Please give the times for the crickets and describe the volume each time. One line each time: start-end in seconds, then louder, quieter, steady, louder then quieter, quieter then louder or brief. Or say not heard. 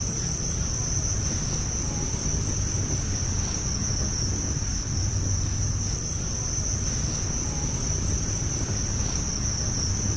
0.0-10.1 steady.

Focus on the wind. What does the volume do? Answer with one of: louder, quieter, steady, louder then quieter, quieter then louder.
steady.